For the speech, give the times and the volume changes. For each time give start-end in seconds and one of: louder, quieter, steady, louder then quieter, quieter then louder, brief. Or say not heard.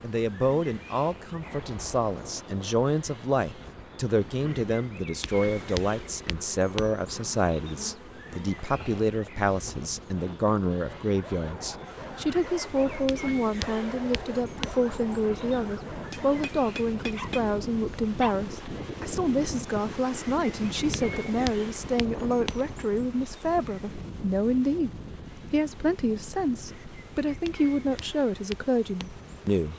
0.0-29.7 steady.